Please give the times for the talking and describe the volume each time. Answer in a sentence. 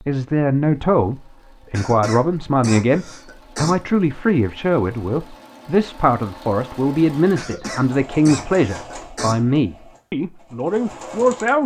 You can hear the talking from 0.1 to 11.6 s, at a steady volume.